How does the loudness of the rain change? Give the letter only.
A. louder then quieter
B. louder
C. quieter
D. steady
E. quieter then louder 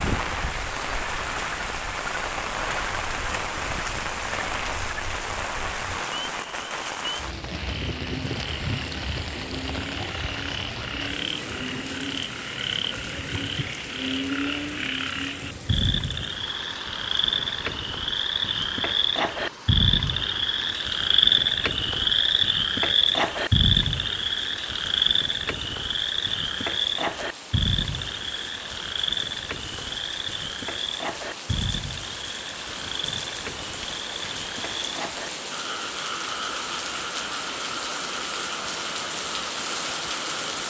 E.